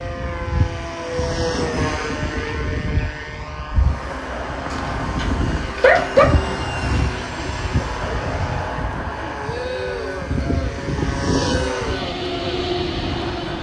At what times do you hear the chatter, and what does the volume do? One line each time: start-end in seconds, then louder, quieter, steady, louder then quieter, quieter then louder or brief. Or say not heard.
3.8-13.5 steady.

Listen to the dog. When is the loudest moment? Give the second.
6 s.